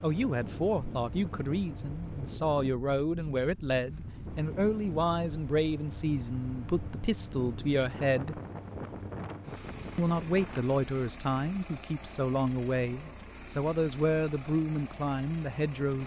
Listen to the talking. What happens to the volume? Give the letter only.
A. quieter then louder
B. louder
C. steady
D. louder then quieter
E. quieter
C.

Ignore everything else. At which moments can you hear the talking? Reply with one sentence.
You can hear the talking from 0.0 to 8.4 s and from 9.9 to 16.0 s.